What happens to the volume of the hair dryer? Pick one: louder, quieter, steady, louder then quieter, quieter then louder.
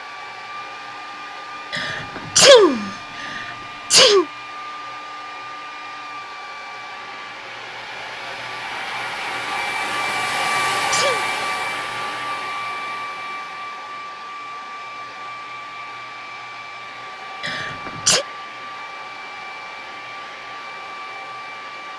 louder then quieter.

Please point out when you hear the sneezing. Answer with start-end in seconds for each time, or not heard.
1.7-4.2, 10.5-11.2, 17.4-18.2.